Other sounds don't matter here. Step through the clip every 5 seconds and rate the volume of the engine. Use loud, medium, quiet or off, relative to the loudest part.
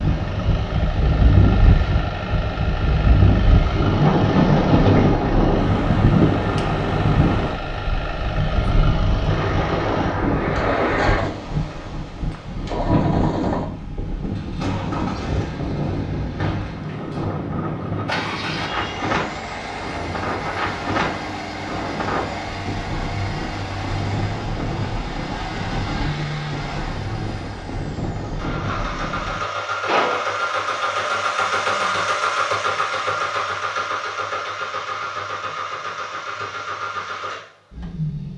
medium, medium, medium, medium, medium, medium, loud, medium.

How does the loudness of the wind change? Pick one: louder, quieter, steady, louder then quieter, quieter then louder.
quieter.